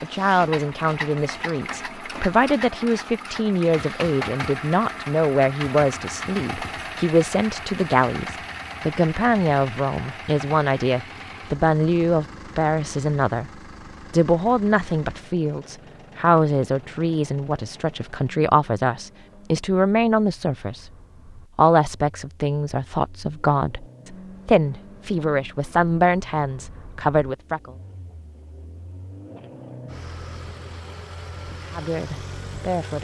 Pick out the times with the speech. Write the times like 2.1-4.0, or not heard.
0.0-13.5, 14.1-20.9, 21.6-27.7, 31.6-32.9.